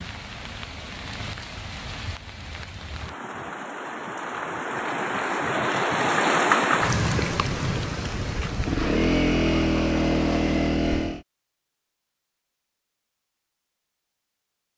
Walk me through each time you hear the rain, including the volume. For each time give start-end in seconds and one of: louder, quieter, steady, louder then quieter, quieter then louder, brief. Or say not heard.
0.0-10.8 louder then quieter.